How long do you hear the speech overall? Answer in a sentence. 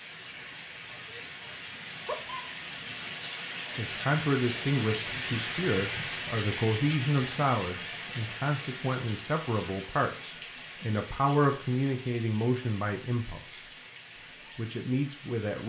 The speech can be heard for 11 seconds in total.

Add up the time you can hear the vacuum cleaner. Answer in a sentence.
You can't hear the vacuum cleaner here.